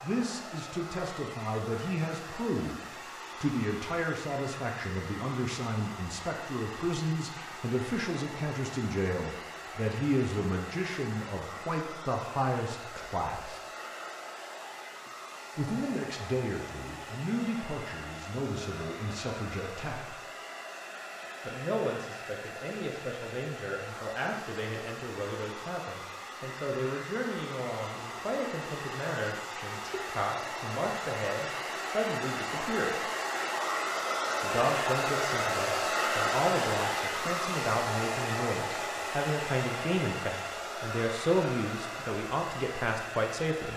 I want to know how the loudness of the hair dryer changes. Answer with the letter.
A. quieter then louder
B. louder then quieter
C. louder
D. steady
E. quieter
C.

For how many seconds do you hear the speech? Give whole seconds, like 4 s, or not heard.
39 s.